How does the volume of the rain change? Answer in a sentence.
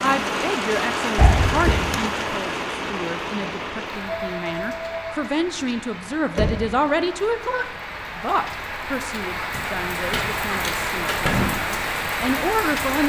The volume of the rain goes down, then up.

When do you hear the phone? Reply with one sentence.
The phone can be heard from 4.0 to 5.8 s.